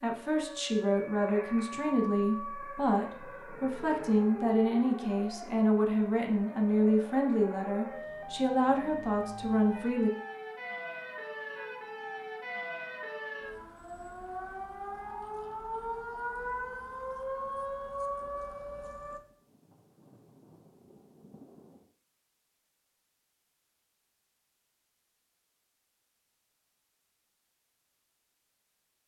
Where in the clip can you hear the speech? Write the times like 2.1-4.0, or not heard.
0.0-10.1.